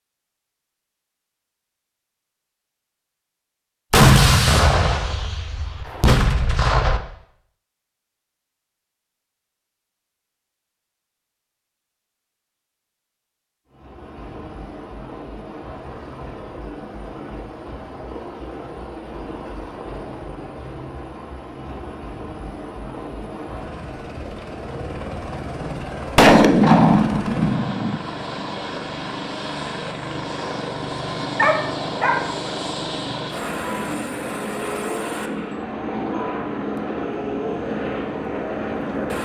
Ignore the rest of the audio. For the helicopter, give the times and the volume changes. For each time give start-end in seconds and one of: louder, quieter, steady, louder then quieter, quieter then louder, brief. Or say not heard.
13.7-39.2 louder.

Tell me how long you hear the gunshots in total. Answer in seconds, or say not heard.
5 s.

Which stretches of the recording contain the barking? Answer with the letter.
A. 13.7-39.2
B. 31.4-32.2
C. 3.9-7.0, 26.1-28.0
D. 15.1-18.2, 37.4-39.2
B.